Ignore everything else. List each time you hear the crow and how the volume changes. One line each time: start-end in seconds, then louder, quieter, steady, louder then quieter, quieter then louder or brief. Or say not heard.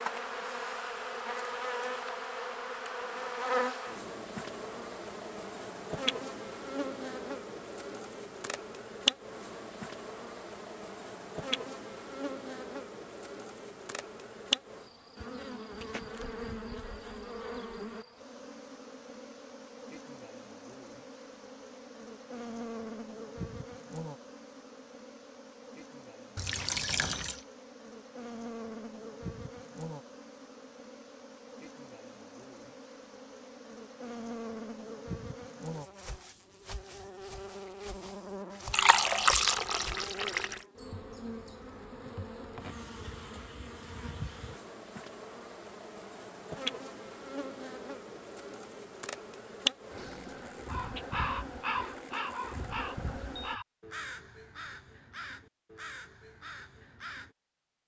50.0-57.4 quieter.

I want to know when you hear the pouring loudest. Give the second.
39 s.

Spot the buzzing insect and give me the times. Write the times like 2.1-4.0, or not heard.
0.0-53.6.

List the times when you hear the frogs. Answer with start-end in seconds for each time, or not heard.
not heard.